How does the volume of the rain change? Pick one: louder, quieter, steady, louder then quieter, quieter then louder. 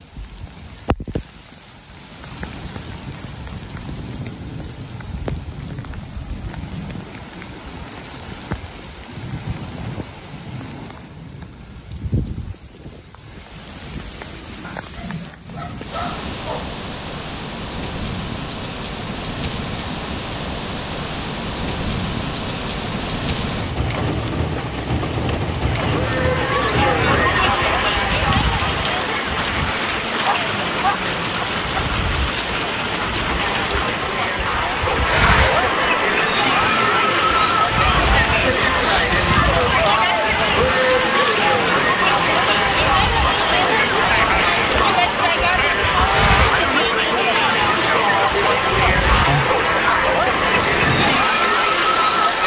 louder.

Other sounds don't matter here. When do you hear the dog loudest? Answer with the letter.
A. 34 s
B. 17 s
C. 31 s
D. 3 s
C.